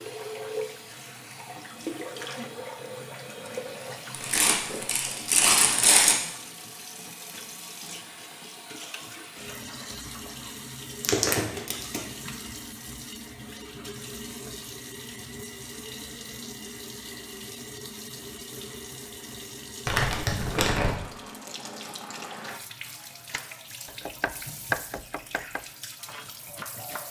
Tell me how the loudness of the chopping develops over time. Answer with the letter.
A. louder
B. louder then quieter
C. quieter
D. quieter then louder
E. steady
B.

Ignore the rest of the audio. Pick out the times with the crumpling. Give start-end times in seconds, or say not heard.
4.1-6.2, 11.0-12.0, 19.9-20.9.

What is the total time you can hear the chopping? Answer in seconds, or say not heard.
4 s.